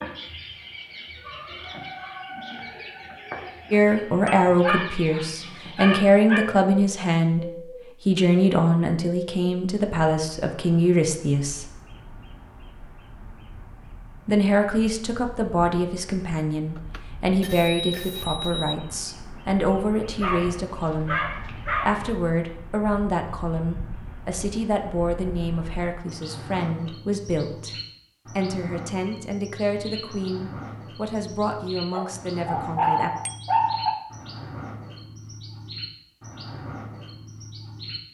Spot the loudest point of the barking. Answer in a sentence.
The loudest moment of the barking is at 33 seconds.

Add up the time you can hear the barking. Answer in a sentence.
The barking can be heard for 6 seconds in total.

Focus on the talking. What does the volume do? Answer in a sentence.
The volume of the talking goes down.